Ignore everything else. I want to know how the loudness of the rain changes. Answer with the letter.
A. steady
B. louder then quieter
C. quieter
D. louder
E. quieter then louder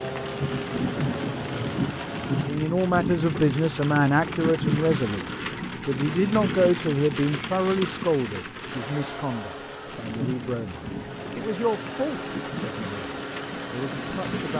C.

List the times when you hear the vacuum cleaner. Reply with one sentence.
You can hear the vacuum cleaner from 0.0 to 2.5 s and from 8.7 to 14.5 s.